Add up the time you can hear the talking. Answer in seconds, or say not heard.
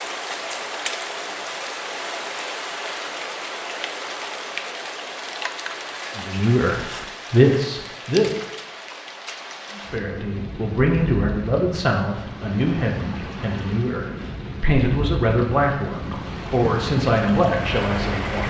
11 s.